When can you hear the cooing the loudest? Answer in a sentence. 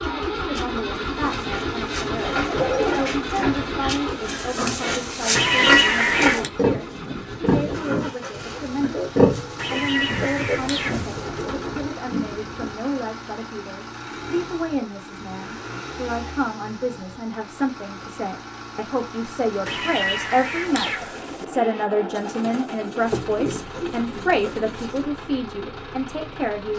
The loudest moment of the cooing is at 3 seconds.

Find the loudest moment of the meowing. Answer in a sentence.
The volume of the meowing peaks at 6 seconds.